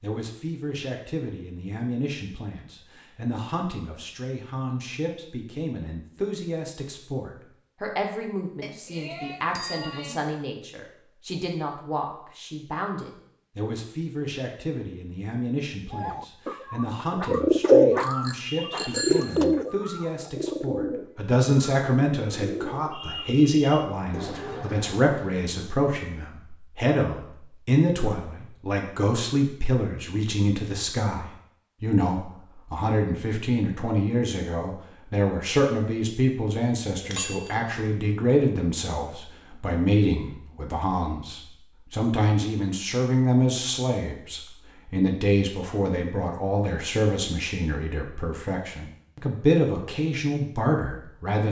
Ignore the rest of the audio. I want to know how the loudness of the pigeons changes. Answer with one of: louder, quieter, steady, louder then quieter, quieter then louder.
quieter.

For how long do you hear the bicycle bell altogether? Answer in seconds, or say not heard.
4 s.